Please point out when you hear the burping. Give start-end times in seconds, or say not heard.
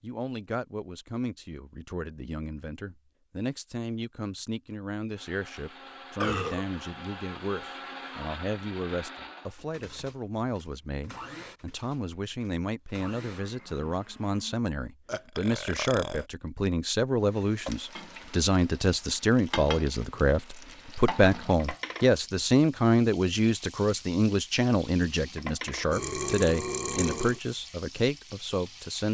6.2-6.7, 15.1-16.2, 25.9-27.4.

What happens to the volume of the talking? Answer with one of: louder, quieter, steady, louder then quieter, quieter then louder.
louder.